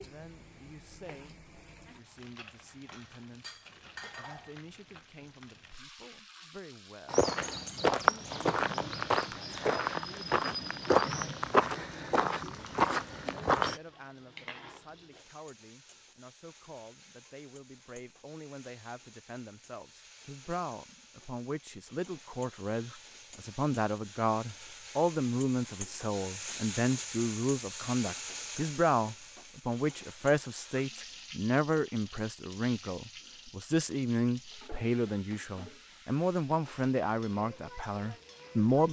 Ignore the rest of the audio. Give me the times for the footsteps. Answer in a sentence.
You can hear the footsteps from 7.0 to 13.8 s.